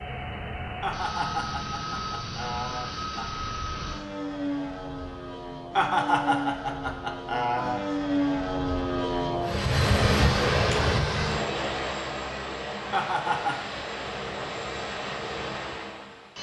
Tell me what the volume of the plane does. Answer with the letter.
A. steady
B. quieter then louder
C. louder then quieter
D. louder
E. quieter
C.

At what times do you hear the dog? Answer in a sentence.
You can't hear the dog here.